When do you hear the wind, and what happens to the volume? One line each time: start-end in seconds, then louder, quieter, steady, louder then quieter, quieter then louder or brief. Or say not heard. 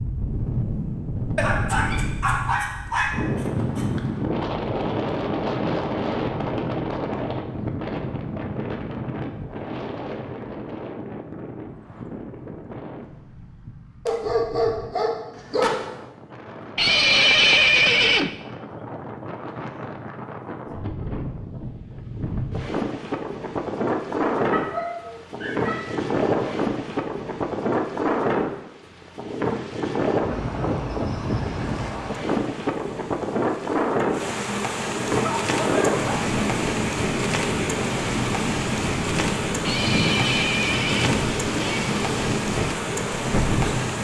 0.0-43.9 quieter then louder.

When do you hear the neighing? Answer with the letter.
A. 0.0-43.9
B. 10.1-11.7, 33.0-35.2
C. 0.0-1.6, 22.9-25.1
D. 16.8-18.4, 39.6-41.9
D.